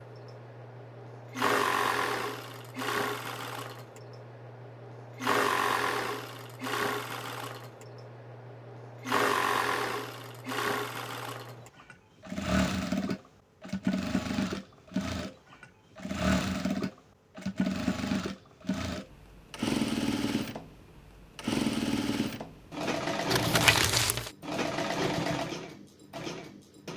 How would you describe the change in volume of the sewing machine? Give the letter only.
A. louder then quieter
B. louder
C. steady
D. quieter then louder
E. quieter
C.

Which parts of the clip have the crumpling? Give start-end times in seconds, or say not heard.
23.3-24.3.